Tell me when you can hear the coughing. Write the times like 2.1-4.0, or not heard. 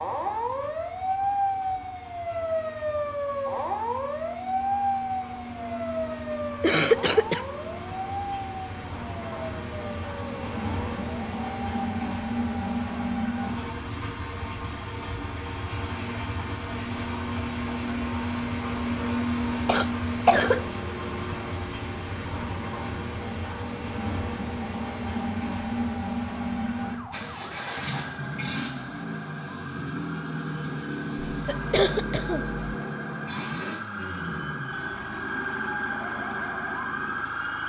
6.6-7.4, 19.6-20.6, 31.3-32.5.